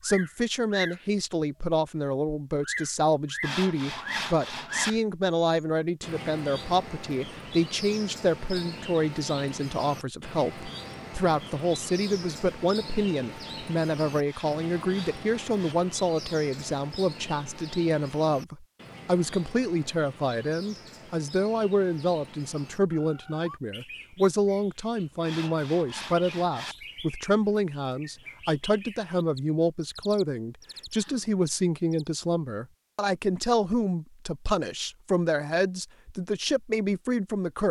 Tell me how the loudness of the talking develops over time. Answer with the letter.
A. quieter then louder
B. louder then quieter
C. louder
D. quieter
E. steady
E.